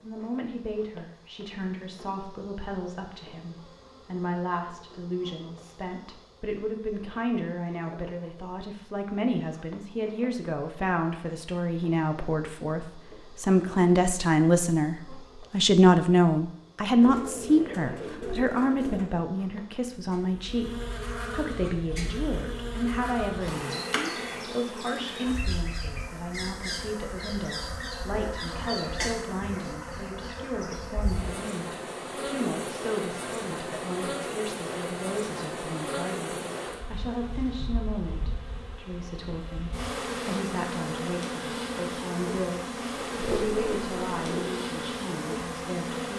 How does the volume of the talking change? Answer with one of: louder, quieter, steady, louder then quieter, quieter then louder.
louder then quieter.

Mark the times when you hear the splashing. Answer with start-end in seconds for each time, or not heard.
not heard.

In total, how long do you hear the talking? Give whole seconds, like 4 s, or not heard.
46 s.